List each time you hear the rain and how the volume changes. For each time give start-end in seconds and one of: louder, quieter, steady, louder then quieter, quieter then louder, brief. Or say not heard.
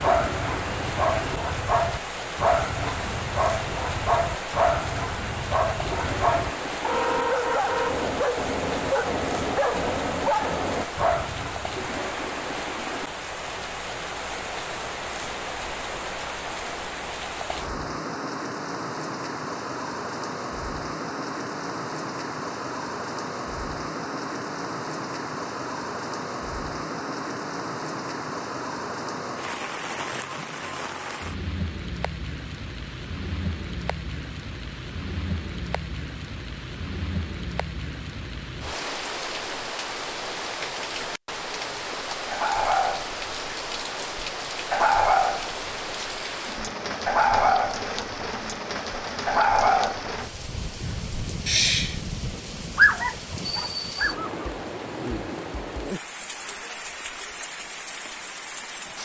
0.0-58.9 steady.